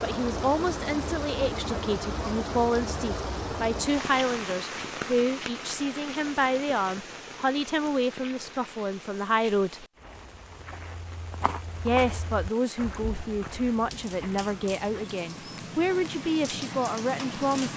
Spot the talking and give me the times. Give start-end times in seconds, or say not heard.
0.0-9.8, 11.8-17.7.